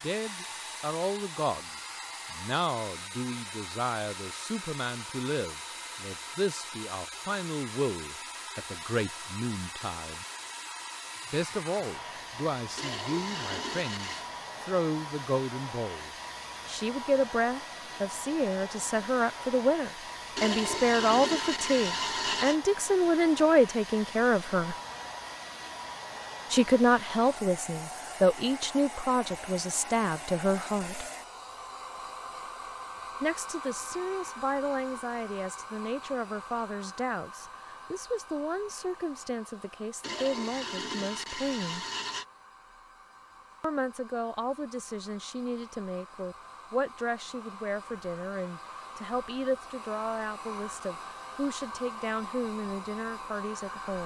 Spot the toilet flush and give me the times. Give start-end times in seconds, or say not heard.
12.8-14.3, 20.4-22.6, 40.0-42.2.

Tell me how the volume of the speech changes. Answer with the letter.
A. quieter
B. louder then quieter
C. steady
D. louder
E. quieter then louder
B.